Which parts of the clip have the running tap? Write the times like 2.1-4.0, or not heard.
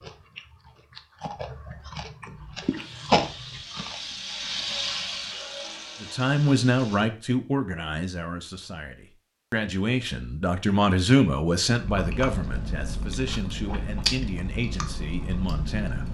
2.4-7.0.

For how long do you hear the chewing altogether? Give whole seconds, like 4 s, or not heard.
8 s.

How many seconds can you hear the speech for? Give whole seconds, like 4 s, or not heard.
10 s.